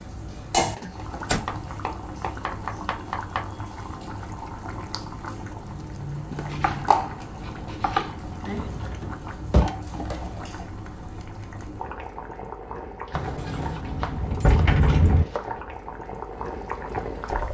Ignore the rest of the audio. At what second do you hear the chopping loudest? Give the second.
8 s.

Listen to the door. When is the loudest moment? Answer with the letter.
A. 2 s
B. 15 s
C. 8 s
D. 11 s
B.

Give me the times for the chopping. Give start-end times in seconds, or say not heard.
1.4-3.5, 6.5-8.7, 13.1-15.6.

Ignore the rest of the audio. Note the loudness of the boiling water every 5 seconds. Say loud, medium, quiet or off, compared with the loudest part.
loud, loud, medium, loud.